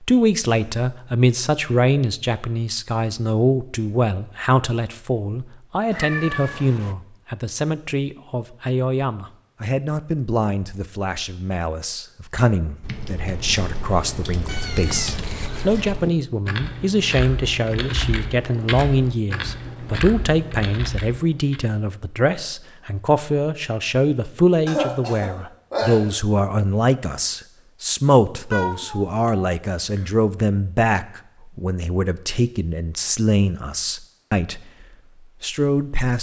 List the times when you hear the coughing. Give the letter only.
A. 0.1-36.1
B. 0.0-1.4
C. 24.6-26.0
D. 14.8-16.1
C.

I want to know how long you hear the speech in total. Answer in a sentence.
You can hear the speech for 36 seconds altogether.